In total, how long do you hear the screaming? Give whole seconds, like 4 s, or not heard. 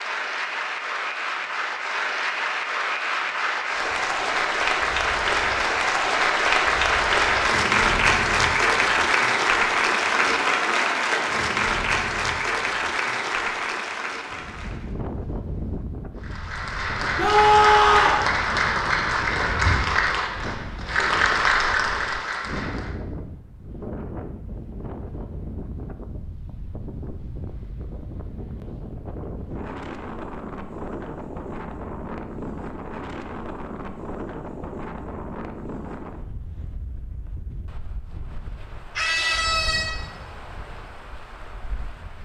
2 s.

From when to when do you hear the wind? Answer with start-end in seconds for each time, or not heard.
14.3-42.2.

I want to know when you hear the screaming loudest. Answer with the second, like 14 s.
18 s.